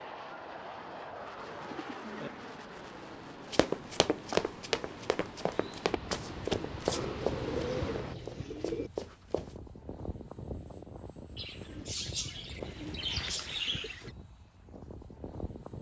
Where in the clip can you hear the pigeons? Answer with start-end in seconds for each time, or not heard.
1.4-2.3, 6.9-8.9, 11.3-14.1.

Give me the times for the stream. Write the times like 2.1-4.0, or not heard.
0.1-8.2.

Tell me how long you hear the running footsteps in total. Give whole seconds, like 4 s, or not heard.
6 s.